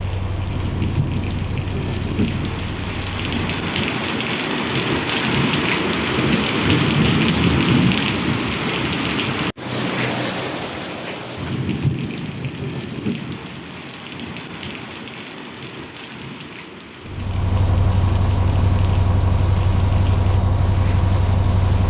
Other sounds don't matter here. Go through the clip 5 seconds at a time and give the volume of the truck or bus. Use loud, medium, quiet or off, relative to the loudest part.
medium, off, off, loud, loud.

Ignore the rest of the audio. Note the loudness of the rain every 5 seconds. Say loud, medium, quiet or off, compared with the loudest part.
medium, loud, medium, quiet, quiet.